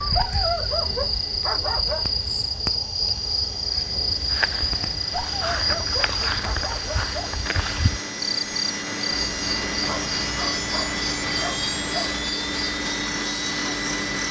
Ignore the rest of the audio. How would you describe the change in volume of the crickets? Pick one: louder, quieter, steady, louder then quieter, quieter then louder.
quieter.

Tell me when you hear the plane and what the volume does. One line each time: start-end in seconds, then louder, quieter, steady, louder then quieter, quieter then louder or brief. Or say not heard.
0.1-14.2 louder.